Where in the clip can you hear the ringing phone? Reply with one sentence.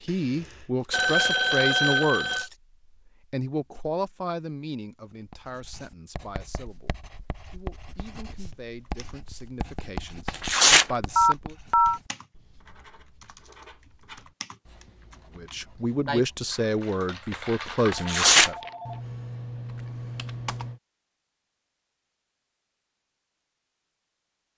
The ringing phone can be heard from 0.9 to 2.5 s, from 11.2 to 12.0 s and from 17.9 to 19.0 s.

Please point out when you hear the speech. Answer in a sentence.
The speech can be heard from 0.0 to 2.5 s, from 3.3 to 11.6 s and from 15.3 to 18.6 s.